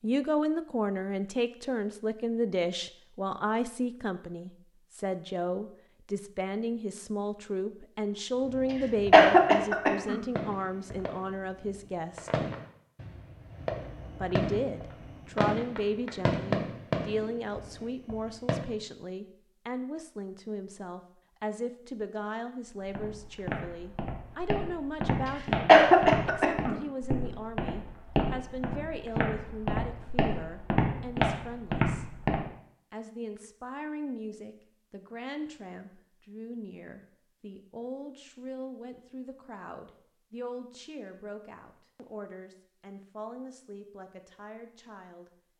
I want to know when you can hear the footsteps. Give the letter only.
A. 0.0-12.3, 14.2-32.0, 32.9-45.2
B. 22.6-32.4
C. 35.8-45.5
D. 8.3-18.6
B.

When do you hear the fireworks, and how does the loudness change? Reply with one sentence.
You can hear the fireworks from 8.3 to 18.6 s, getting louder.